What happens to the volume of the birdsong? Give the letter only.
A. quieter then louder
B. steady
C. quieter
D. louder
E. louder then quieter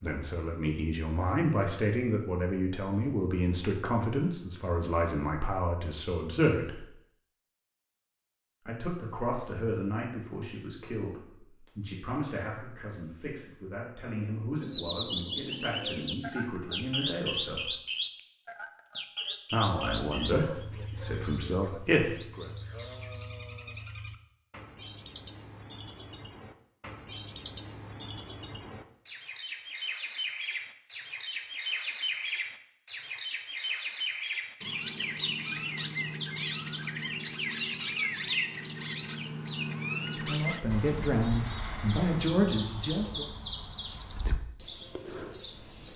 A.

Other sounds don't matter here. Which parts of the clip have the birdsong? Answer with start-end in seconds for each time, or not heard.
14.6-45.9.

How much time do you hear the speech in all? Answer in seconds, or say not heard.
22 s.